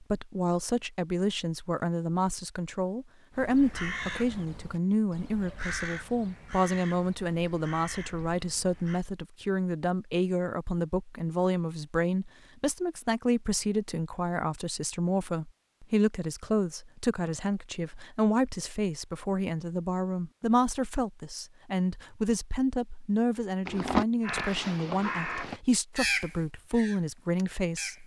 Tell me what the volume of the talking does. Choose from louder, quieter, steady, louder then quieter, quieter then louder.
steady.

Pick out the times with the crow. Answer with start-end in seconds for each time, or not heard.
3.4-9.1, 23.6-28.0.